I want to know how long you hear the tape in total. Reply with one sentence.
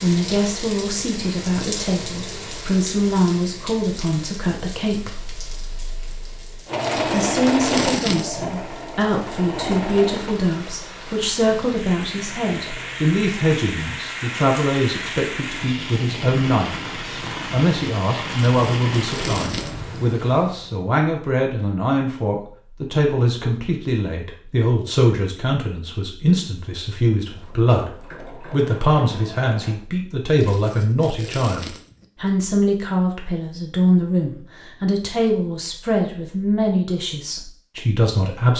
The tape can be heard for 5 seconds in total.